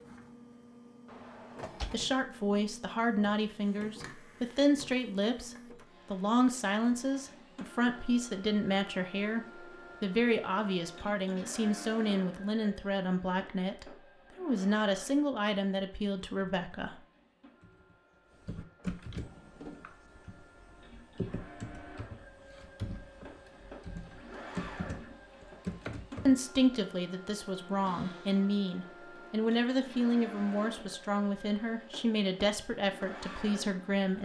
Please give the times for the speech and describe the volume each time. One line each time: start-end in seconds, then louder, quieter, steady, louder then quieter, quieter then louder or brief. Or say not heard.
1.9-16.9 steady
26.2-34.2 steady.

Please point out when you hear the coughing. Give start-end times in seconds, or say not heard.
not heard.